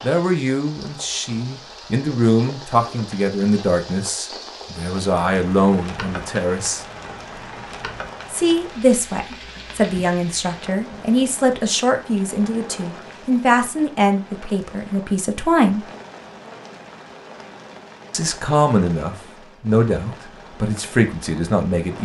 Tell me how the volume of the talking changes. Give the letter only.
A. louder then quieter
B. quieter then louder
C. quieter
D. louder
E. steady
E.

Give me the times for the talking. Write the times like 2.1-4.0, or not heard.
0.0-6.8, 8.3-15.8, 18.1-21.9.